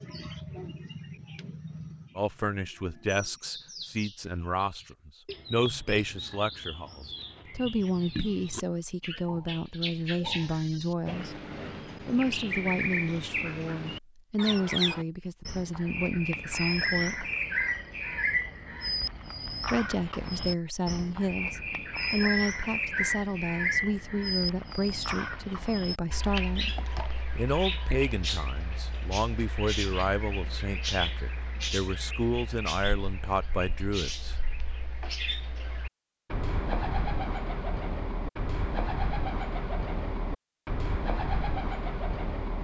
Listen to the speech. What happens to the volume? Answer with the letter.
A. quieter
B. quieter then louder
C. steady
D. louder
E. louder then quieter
C.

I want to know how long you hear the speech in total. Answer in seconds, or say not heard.
29 s.